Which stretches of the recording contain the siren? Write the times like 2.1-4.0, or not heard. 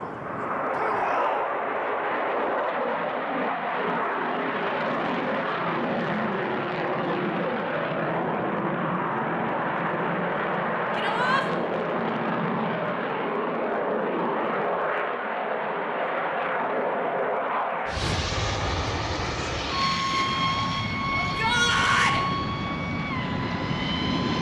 not heard.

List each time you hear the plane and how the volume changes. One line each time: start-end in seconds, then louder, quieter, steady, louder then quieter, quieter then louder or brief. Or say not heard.
0.0-24.3 steady.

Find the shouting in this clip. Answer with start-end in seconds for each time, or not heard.
0.8-1.4, 10.9-11.4, 21.2-22.2.